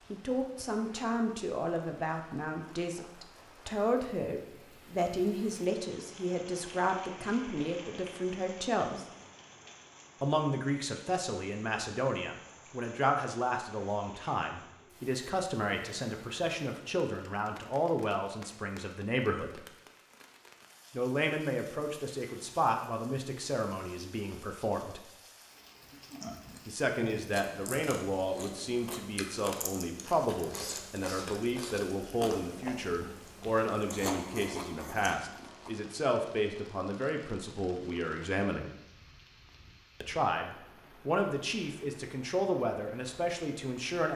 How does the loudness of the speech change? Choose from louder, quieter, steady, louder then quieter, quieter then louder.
steady.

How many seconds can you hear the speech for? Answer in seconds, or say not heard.
39 s.